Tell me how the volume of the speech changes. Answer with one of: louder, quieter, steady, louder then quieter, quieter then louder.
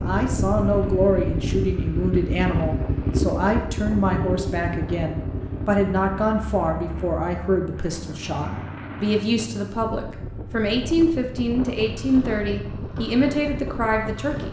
steady.